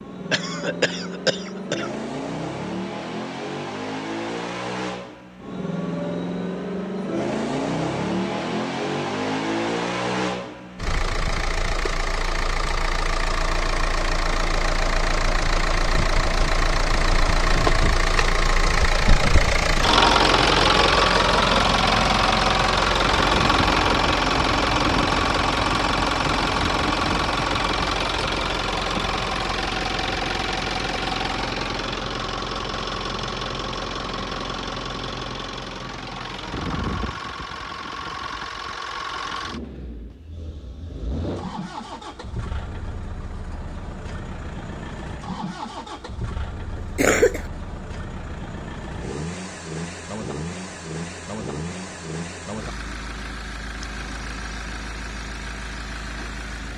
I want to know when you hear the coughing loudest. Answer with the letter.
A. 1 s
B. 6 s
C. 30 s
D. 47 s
D.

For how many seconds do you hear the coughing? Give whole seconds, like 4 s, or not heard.
2 s.